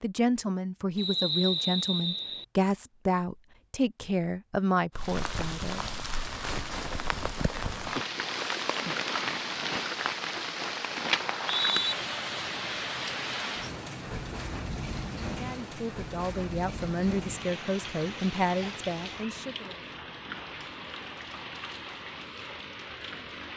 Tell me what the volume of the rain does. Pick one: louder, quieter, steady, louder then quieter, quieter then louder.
quieter.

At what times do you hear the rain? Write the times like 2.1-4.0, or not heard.
5.0-23.5.